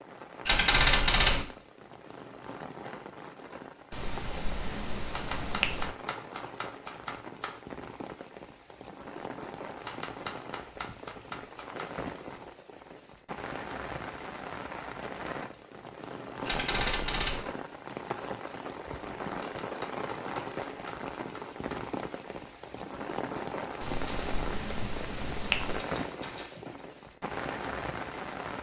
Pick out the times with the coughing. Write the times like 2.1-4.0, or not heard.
not heard.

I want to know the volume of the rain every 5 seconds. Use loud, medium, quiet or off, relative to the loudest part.
medium, medium, loud, loud, loud, loud.